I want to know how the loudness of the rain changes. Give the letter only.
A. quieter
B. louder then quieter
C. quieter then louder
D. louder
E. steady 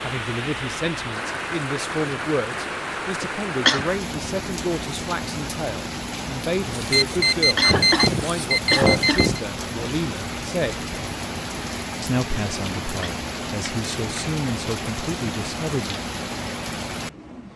E.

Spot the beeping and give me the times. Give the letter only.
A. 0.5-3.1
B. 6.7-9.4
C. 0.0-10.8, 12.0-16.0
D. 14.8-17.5
B.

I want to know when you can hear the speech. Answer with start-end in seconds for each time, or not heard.
0.0-10.8, 12.0-16.0.